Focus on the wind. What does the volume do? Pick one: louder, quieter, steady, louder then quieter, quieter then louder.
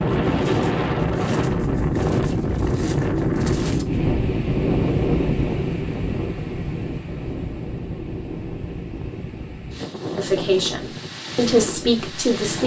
quieter.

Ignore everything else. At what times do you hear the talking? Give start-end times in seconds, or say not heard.
10.2-12.6.